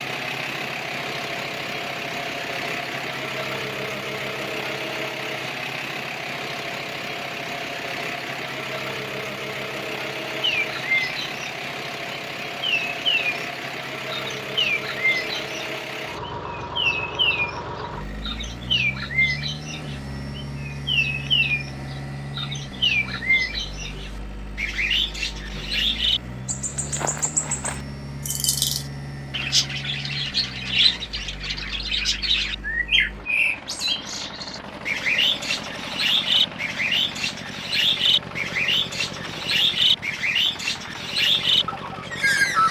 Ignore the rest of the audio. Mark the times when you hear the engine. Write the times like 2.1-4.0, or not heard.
0.0-42.6.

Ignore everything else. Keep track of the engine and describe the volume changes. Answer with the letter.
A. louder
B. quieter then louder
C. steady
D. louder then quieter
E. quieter
E.